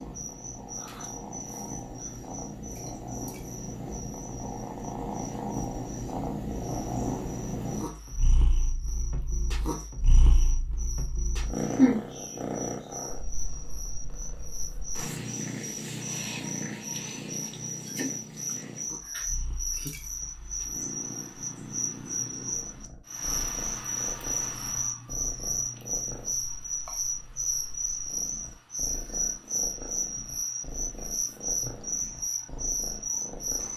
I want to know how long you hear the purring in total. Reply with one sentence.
The purring can be heard for 34 seconds in total.